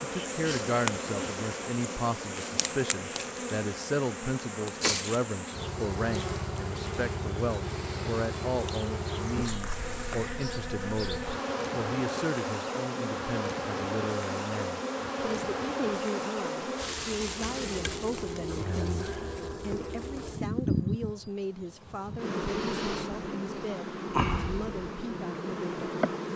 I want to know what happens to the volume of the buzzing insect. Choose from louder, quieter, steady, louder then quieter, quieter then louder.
steady.